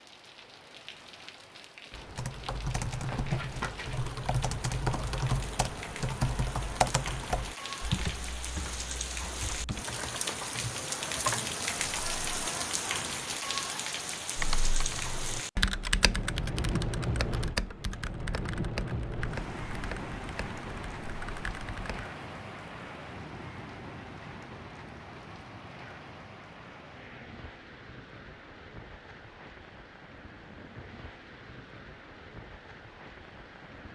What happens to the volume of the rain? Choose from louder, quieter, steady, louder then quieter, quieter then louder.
louder then quieter.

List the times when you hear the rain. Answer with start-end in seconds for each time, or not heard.
0.0-33.8.